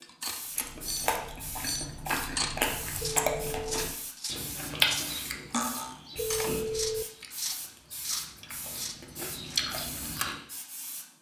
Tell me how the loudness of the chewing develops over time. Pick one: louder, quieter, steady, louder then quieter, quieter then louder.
quieter then louder.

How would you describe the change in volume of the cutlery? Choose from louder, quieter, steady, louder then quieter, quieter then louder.
steady.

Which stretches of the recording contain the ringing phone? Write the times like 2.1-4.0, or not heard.
3.0-3.9, 6.2-7.0.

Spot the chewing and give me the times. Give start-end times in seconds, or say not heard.
0.6-10.3.